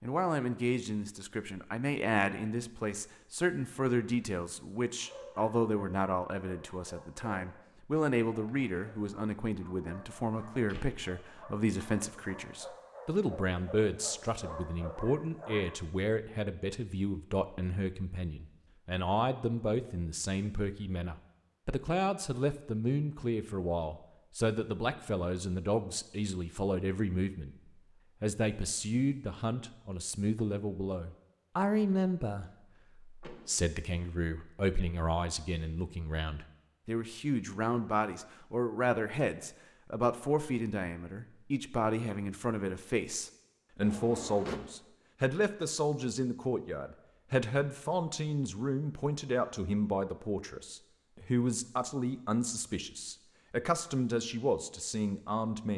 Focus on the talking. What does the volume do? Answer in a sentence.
The loudness of the talking stays about the same.